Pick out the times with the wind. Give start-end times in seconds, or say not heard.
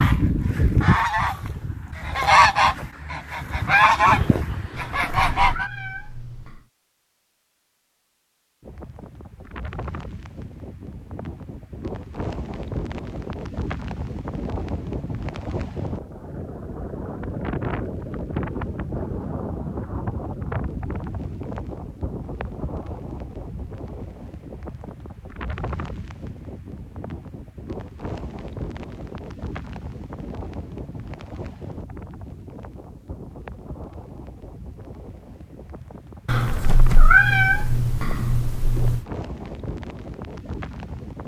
8.6-41.2.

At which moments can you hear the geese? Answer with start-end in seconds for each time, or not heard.
0.0-5.7.